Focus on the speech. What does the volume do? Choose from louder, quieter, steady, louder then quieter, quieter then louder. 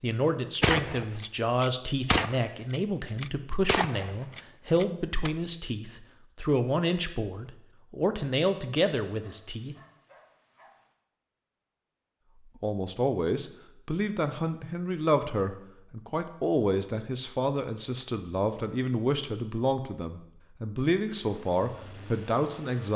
steady.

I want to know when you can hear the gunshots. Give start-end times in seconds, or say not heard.
0.6-5.3.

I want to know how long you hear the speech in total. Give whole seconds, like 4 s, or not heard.
20 s.